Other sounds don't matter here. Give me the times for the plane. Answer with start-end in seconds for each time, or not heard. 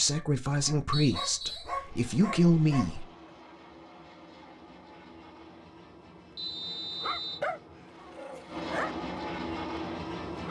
1.9-10.4.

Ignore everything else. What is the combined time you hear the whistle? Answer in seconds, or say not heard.
2 s.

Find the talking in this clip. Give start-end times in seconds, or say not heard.
0.0-3.0.